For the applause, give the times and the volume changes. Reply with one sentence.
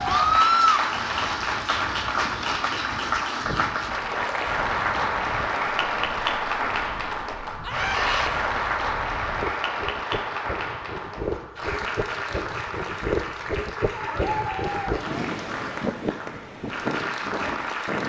The applause can be heard from 0.0 to 18.0 s, getting quieter.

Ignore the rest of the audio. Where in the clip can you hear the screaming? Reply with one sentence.
You can hear the screaming from 0.1 to 0.8 s, from 7.7 to 8.3 s and from 13.9 to 15.0 s.